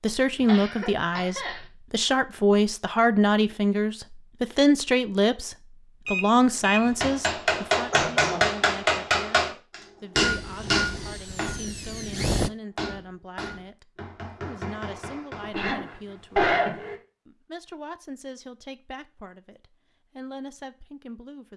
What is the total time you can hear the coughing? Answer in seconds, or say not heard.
4 s.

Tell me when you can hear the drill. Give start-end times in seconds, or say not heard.
10.2-12.5.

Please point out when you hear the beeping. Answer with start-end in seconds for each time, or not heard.
6.0-6.8.